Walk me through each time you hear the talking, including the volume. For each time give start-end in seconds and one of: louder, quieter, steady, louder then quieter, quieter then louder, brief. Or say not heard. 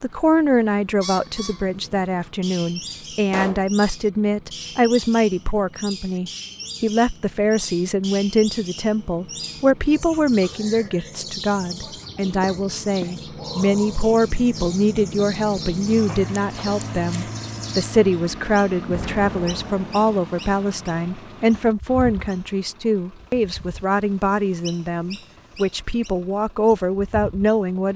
0.0-27.9 steady.